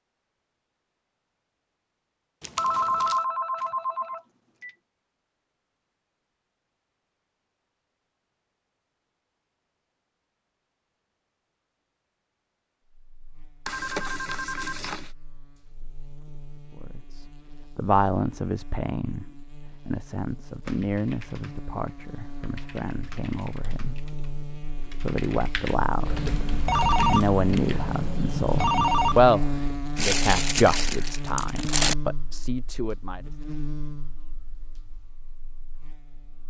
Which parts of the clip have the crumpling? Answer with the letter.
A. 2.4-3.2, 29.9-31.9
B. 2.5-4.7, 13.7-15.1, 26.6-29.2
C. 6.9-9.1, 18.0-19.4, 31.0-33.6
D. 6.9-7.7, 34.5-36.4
A.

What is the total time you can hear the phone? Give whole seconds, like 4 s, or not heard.
6 s.